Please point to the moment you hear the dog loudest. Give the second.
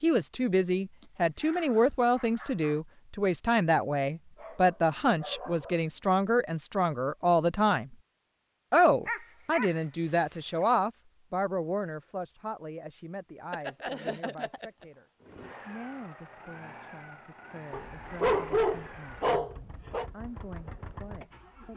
18 s.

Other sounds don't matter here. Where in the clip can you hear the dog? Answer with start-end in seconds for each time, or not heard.
1.0-2.8, 4.3-5.8, 9.1-9.8, 13.5-14.8, 17.7-20.1.